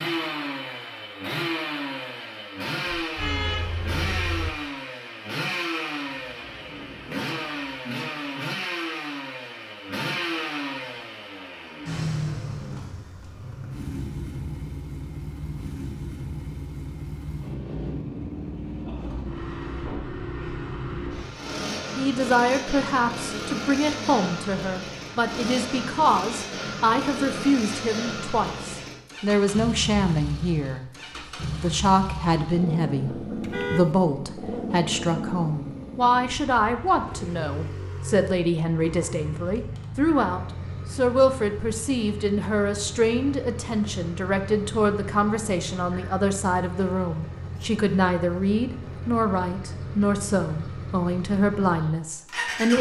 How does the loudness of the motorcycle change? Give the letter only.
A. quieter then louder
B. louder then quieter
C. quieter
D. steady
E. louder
C.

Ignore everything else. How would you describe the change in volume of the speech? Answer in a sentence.
The loudness of the speech stays about the same.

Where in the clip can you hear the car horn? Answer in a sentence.
You can hear the car horn from 2.9 to 4.5 s and from 33.4 to 34.0 s.